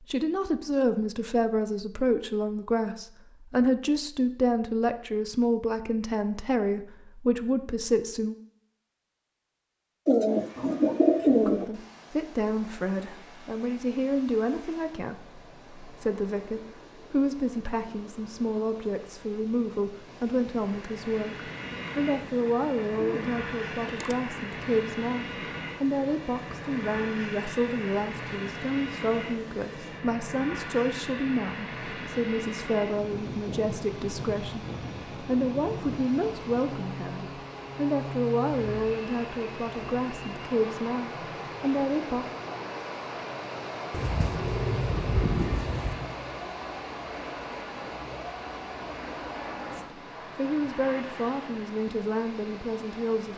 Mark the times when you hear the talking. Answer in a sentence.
You can hear the talking from 0.0 to 8.3 s, from 11.3 to 42.4 s and from 49.7 to 53.3 s.